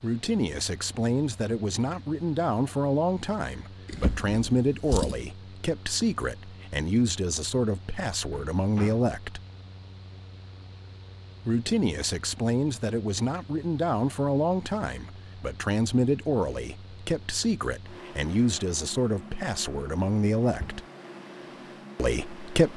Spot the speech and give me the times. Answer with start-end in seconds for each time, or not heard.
0.0-9.4, 11.4-20.8, 21.9-22.7.